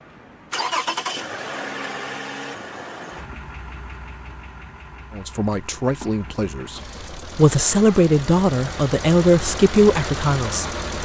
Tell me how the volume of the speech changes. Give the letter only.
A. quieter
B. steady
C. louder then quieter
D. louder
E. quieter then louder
D.